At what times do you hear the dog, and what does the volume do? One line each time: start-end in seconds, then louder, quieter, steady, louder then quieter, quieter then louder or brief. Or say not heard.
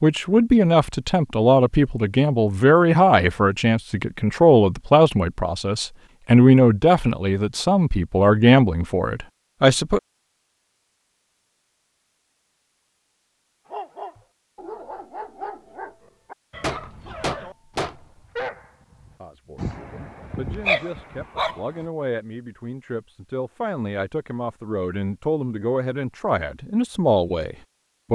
13.7-21.6 louder.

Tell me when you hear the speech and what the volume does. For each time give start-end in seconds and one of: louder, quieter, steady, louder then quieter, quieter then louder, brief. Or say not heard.
0.0-10.0 steady
19.2-28.1 louder.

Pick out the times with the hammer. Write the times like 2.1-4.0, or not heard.
16.6-18.1.